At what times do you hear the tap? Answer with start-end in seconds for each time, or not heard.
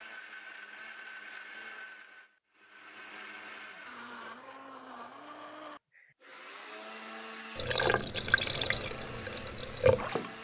7.5-10.3.